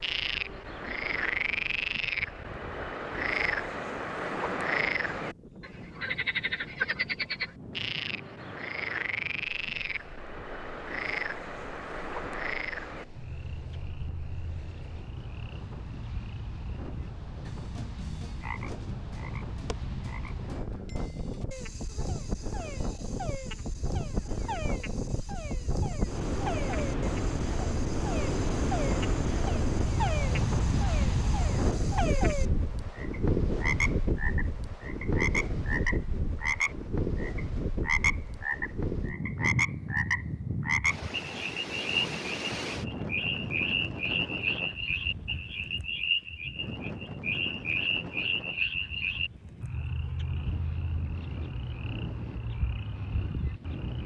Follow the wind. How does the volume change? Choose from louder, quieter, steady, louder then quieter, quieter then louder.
louder then quieter.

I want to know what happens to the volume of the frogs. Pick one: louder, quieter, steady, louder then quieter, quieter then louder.
quieter then louder.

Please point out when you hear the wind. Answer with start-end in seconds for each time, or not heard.
0.0-54.0.